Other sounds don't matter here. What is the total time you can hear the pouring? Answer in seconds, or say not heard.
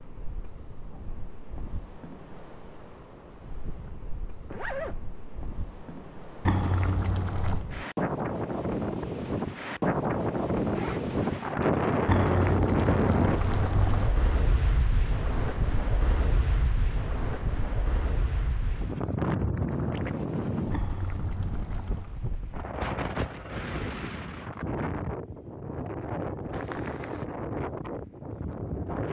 5 s.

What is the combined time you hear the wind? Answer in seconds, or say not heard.
29 s.